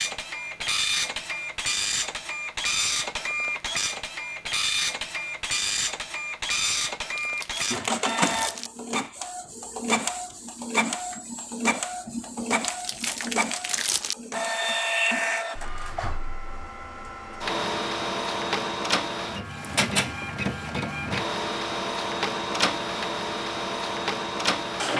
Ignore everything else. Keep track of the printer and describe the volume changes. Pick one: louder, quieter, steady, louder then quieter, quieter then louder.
steady.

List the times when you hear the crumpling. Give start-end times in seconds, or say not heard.
7.2-8.7, 12.6-14.2.